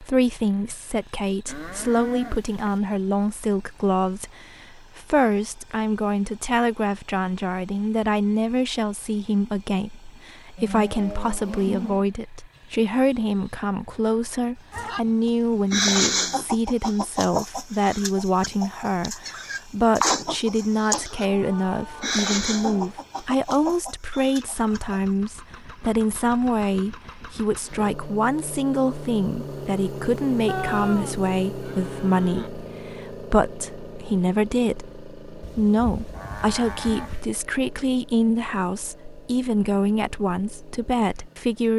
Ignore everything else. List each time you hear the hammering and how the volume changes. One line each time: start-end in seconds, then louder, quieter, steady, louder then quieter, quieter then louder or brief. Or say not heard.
not heard.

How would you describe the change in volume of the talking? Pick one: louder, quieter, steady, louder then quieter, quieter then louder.
steady.